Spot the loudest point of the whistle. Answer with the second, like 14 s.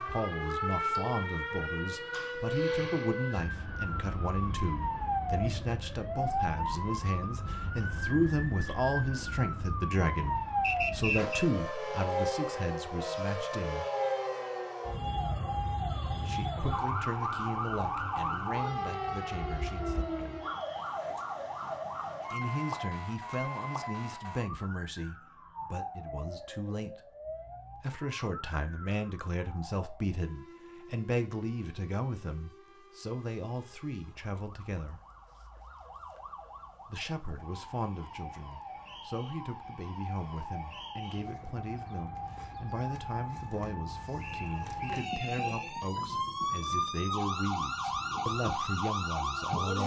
11 s.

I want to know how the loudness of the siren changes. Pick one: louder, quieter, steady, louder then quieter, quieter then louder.
quieter then louder.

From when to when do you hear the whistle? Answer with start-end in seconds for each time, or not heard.
10.6-11.4, 44.1-45.9.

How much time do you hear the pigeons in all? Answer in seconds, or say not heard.
not heard.